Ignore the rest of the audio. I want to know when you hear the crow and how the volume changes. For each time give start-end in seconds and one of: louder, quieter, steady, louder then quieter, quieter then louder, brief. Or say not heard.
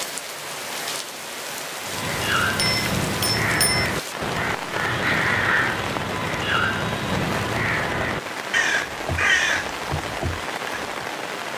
1.9-11.1 steady.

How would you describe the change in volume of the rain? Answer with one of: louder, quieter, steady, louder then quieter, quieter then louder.
steady.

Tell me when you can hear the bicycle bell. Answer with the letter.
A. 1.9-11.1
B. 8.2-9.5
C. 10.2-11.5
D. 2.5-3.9
D.